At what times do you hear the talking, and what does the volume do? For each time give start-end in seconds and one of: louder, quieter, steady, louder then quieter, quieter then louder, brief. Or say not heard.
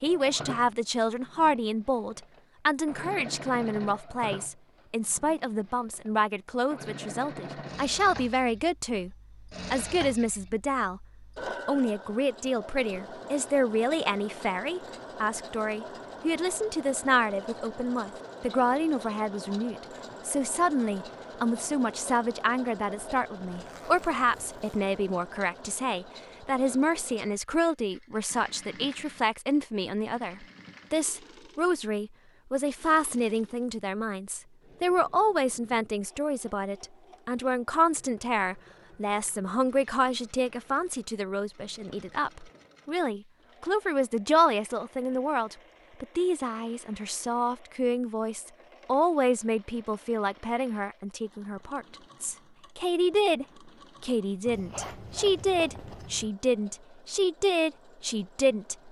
0.0-11.1 steady
11.7-58.8 steady.